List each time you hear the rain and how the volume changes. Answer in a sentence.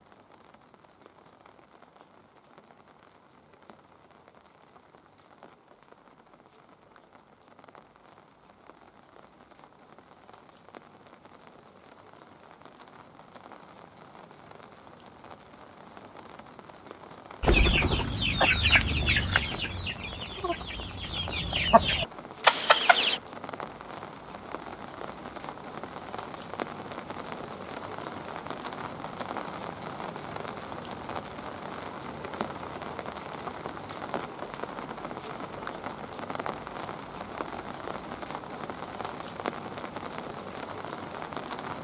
The rain can be heard from 0.0 to 41.7 s, getting louder.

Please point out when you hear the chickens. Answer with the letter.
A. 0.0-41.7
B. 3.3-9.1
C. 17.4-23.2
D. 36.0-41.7
C.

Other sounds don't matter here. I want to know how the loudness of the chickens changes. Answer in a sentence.
The volume of the chickens goes down, then up.